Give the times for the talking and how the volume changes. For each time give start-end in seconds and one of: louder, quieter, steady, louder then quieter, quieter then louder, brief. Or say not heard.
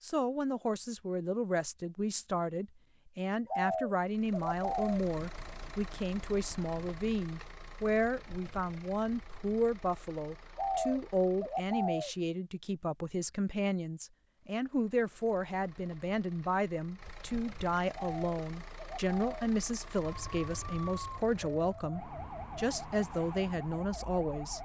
0.0-24.5 steady.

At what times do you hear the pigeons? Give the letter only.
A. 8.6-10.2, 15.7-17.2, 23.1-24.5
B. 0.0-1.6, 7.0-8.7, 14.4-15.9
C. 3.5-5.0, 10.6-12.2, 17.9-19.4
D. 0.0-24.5
C.